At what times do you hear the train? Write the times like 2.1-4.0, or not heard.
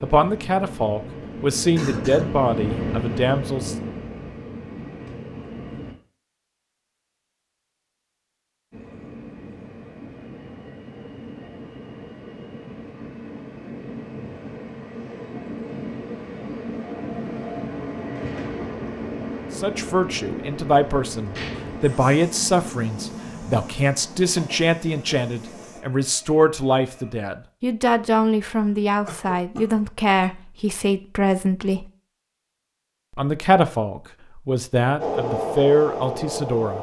0.0-6.0, 8.7-27.1, 35.0-36.7.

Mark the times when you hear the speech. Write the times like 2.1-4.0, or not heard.
0.0-3.8, 19.6-31.9, 33.1-36.7.